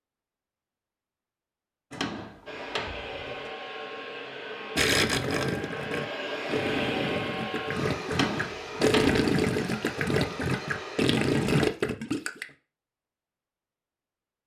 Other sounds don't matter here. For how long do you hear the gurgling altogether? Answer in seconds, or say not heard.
8 s.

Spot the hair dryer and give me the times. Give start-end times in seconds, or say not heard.
2.5-11.7.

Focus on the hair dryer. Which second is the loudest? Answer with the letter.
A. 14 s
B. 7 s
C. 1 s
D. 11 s
B.